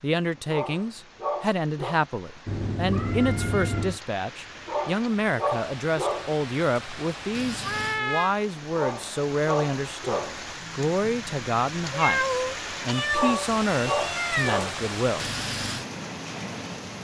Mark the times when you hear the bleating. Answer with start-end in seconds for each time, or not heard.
not heard.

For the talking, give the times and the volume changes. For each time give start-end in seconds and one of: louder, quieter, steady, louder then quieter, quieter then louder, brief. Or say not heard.
0.0-15.3 steady.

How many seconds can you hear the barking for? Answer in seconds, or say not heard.
7 s.